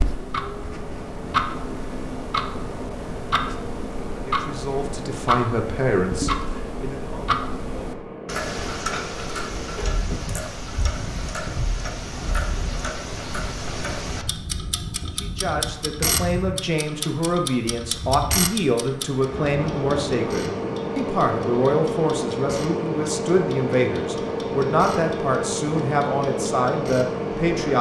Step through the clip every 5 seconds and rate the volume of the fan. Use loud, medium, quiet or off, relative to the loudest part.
medium, medium, medium, medium, loud, loud.